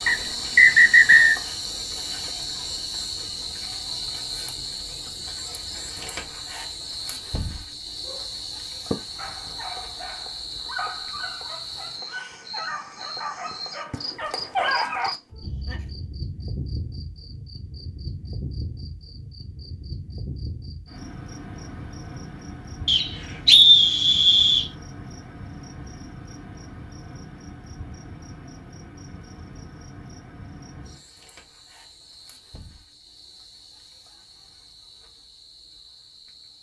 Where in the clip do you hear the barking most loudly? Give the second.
15 s.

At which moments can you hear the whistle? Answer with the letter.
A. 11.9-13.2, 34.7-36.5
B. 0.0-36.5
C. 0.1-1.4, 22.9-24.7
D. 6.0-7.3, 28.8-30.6
C.